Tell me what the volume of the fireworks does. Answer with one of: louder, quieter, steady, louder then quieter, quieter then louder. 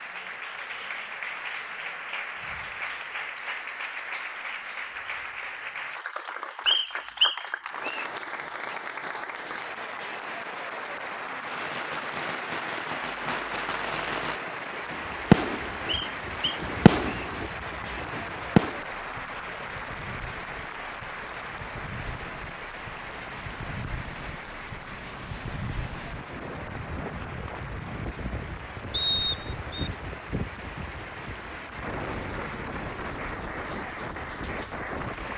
louder then quieter.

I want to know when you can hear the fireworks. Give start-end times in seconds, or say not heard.
11.3-18.9.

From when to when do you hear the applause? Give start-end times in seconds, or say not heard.
0.0-35.3.